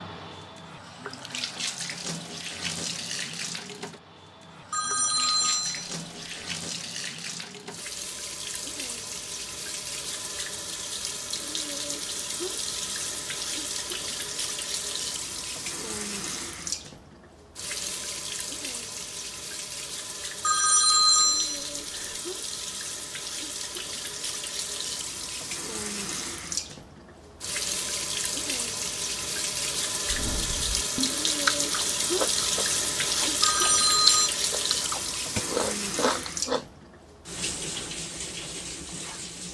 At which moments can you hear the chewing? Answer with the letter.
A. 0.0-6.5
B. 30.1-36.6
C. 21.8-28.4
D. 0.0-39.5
B.